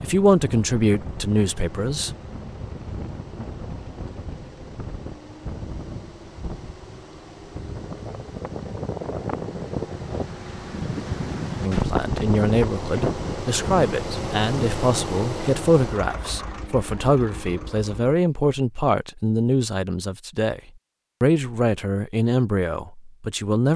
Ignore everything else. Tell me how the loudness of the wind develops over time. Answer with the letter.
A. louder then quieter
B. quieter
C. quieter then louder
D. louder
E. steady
D.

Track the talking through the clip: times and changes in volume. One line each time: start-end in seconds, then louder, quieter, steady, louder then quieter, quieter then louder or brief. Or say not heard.
0.0-2.1 brief
11.6-20.6 steady
21.2-23.7 brief.